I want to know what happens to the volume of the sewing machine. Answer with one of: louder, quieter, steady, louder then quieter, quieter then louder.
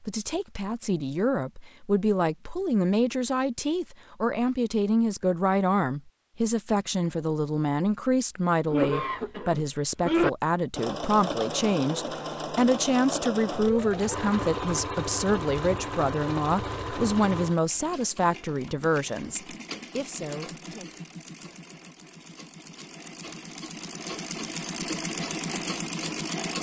quieter then louder.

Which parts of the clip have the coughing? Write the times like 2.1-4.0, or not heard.
8.7-10.3.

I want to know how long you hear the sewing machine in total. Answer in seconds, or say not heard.
16 s.